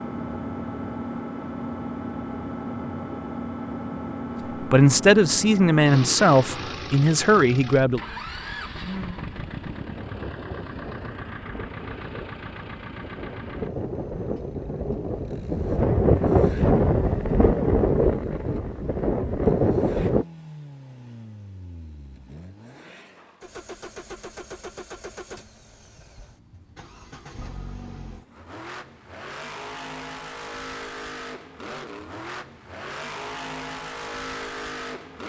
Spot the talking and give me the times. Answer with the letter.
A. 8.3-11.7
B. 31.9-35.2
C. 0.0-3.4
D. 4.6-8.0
D.